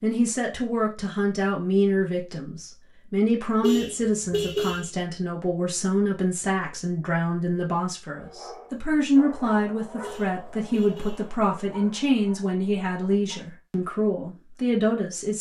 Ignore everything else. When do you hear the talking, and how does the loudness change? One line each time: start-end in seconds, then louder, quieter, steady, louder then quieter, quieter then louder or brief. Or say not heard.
0.0-15.3 steady.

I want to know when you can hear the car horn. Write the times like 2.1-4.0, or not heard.
3.6-4.9, 10.0-11.3.